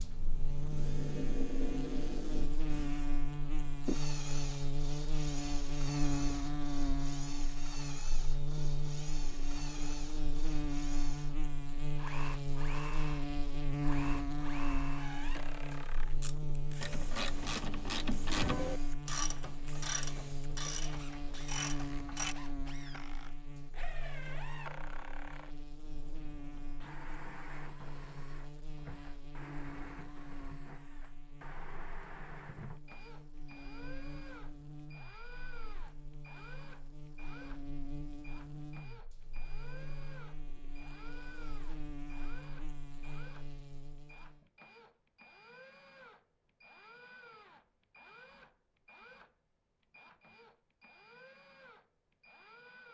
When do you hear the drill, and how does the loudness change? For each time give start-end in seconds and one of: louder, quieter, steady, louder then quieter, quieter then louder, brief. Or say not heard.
0.0-52.8 quieter.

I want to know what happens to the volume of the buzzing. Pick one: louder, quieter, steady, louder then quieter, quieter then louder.
quieter.